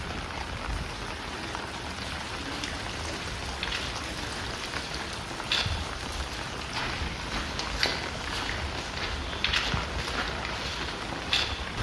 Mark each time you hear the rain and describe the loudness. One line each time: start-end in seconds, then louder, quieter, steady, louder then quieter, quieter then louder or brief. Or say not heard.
0.0-11.7 steady.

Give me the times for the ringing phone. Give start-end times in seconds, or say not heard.
not heard.